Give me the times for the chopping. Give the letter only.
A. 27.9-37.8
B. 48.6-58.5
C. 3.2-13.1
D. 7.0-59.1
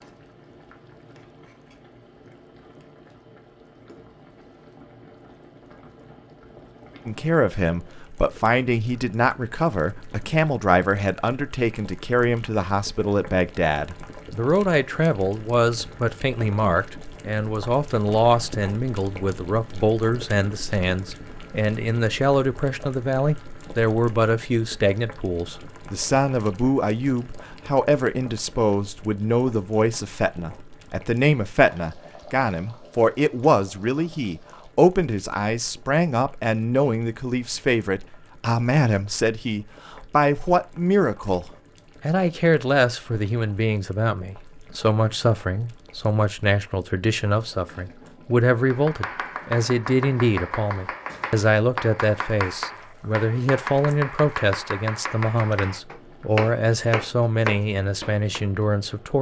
B.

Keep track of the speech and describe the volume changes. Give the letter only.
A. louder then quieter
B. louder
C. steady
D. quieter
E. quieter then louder
C.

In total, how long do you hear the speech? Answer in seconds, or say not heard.
52 s.